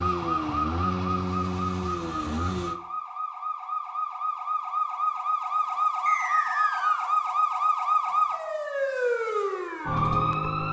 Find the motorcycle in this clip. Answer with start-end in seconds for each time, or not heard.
0.0-2.8.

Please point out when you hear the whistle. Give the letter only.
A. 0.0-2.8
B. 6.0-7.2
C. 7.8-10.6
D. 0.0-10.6
B.